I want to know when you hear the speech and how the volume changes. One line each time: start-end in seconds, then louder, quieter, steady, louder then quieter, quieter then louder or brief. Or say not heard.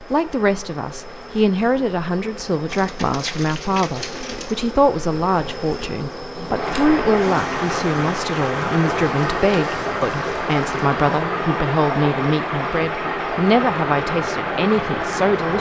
0.0-15.5 steady.